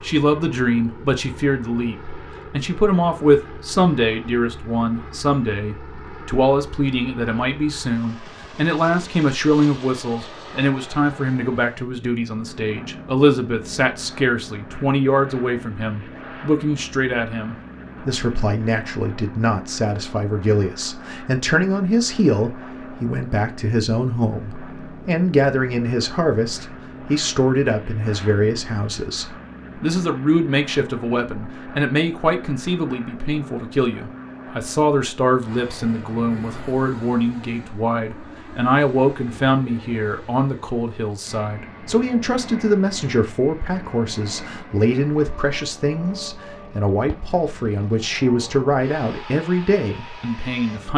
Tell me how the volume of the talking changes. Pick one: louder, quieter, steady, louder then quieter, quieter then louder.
steady.